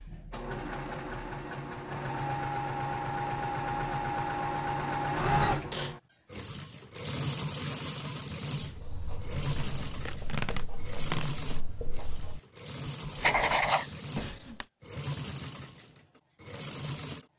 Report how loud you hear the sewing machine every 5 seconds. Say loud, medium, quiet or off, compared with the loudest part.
loud, loud, medium, medium.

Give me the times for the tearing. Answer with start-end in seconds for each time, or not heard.
9.6-11.3.